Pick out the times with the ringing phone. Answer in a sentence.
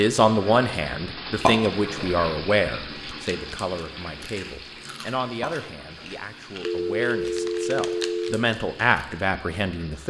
The ringing phone can be heard from 6.7 to 8.4 s.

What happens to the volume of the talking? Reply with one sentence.
The loudness of the talking goes down, then up.